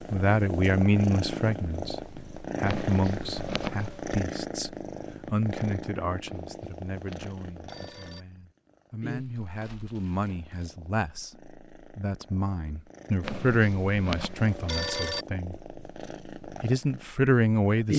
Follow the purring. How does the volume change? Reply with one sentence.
The loudness of the purring goes down, then up.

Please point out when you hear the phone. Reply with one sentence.
The phone can be heard from 2.6 to 4.2 s, from 6.2 to 8.2 s and from 13.2 to 15.2 s.